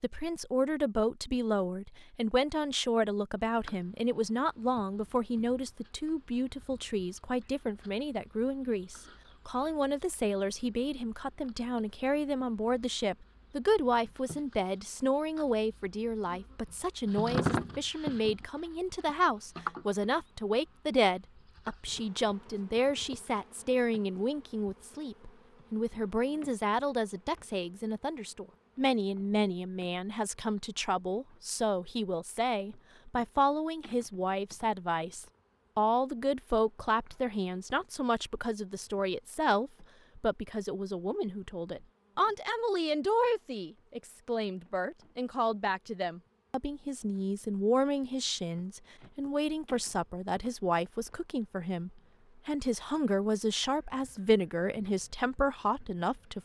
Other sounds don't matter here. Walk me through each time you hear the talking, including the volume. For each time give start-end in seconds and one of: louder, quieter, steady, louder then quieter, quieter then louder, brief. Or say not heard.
0.0-56.4 steady.